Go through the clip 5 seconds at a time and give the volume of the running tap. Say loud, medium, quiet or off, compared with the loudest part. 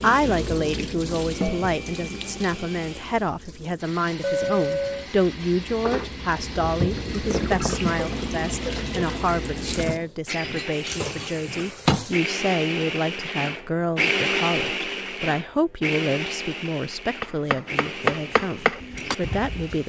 medium, loud, loud, off.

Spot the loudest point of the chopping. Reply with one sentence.
The volume of the chopping peaks at 18 seconds.